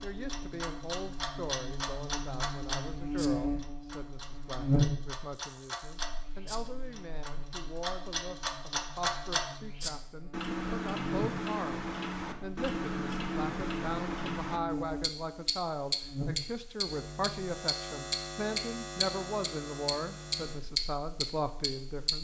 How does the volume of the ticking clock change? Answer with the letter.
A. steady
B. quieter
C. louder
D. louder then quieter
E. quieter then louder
C.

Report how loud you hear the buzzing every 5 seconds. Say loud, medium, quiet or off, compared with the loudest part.
loud, quiet, medium, medium, quiet.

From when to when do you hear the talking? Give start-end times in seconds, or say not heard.
0.0-22.2.